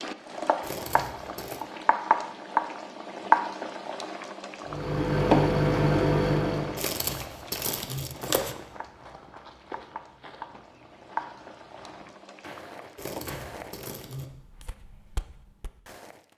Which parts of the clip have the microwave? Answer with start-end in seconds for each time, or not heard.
4.7-6.8.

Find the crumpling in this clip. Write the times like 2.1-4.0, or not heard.
0.6-1.6, 6.8-8.6, 12.9-14.3.